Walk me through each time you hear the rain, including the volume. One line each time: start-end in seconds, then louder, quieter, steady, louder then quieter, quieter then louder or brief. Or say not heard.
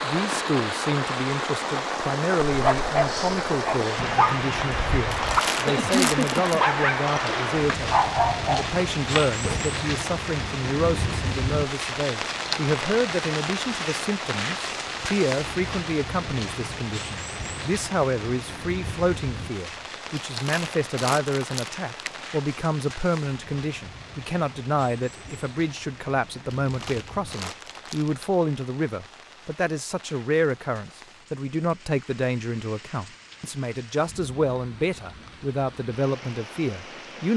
0.0-37.3 quieter.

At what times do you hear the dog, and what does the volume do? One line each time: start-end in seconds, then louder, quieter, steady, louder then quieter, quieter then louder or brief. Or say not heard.
2.5-9.6 steady.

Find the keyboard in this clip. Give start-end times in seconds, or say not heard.
not heard.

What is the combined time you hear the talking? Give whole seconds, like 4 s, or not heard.
37 s.